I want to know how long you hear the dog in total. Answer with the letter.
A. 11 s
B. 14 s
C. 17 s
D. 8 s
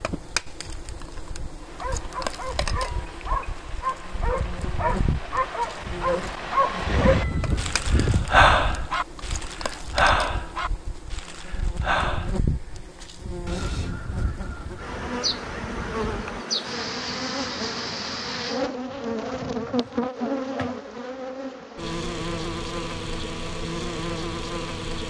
A.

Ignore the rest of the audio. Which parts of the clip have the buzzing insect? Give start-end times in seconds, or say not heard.
0.0-25.0.